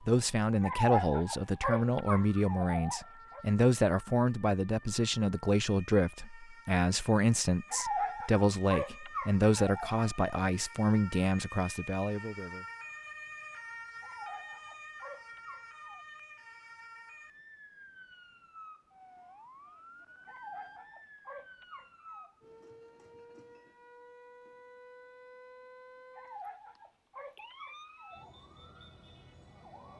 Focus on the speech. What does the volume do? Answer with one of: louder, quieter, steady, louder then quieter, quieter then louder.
steady.